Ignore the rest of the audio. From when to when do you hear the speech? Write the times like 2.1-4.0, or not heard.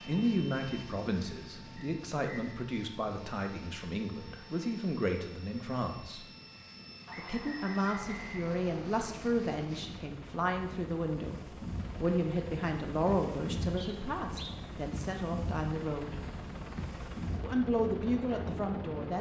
0.1-6.2, 7.2-16.1, 17.4-19.1.